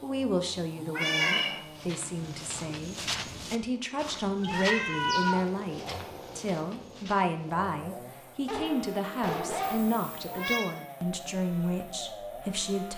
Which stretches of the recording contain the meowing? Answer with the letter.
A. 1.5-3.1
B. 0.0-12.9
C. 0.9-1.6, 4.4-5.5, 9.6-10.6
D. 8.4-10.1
C.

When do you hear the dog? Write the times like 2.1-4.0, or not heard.
8.4-10.1.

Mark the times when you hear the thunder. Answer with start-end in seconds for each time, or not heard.
not heard.